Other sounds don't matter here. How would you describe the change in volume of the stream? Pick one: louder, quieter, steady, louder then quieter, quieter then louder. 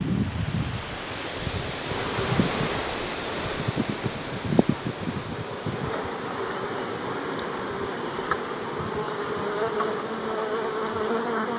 quieter.